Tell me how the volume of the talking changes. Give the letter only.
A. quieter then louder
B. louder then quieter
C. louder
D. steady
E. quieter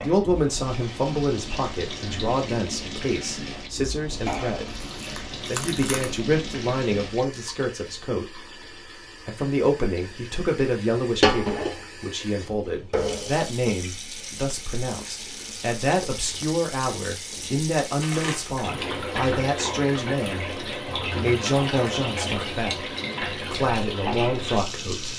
D.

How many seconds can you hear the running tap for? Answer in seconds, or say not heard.
25 s.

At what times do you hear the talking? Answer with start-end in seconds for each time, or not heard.
0.0-4.7, 5.3-8.4, 9.2-25.1.